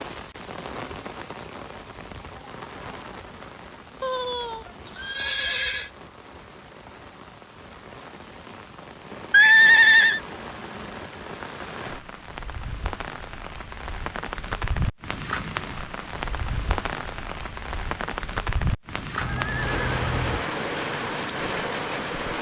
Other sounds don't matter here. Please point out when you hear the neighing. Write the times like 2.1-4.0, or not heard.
4.0-5.9, 9.3-10.2, 19.2-20.4.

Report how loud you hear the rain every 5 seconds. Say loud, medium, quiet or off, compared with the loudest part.
medium, quiet, medium, loud, loud.